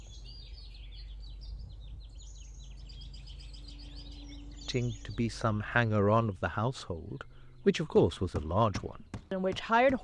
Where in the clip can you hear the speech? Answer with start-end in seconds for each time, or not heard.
4.7-9.9.